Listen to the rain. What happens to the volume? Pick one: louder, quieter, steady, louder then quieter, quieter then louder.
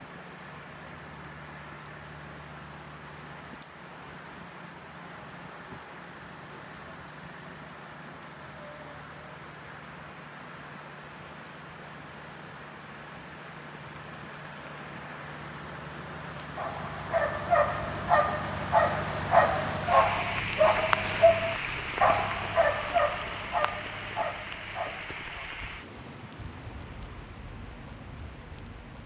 louder then quieter.